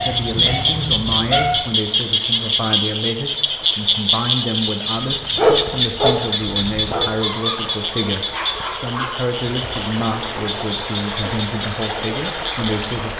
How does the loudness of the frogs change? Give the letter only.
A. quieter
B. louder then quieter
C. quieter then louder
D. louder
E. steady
A.